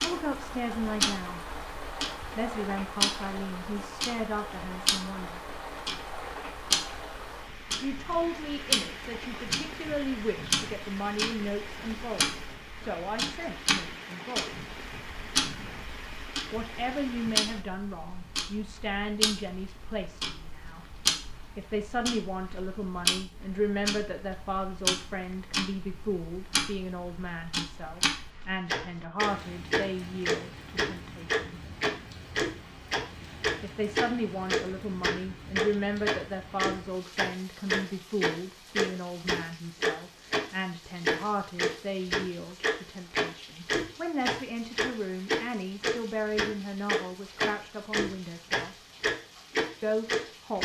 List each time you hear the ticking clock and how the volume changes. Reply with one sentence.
The ticking clock can be heard from 0.0 to 40.5 s, getting louder; and from 41.0 to 50.5 s, at a steady volume.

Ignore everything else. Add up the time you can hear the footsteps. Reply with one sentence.
The footsteps can't be heard in this clip.